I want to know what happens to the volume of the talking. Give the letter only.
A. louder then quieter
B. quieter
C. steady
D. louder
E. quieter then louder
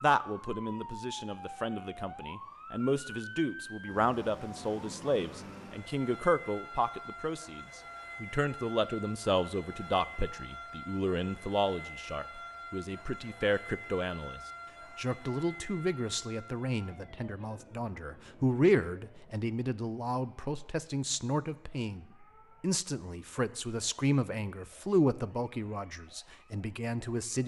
C.